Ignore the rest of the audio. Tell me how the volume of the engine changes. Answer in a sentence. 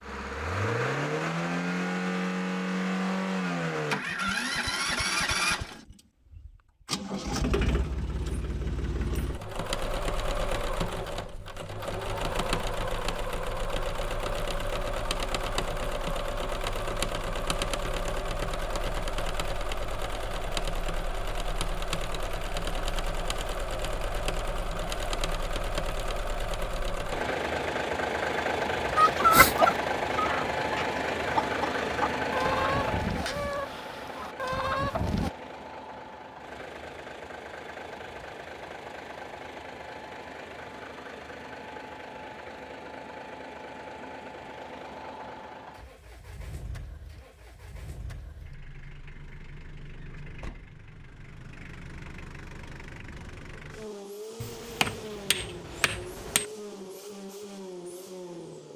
The loudness of the engine goes down.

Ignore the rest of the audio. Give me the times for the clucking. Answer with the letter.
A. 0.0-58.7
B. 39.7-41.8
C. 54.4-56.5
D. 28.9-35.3
D.